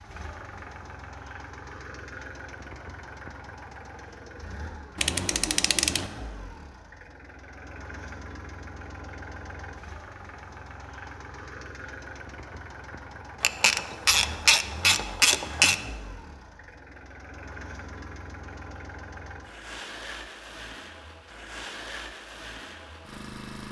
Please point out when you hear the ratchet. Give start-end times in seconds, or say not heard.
5.0-6.1, 13.4-15.8.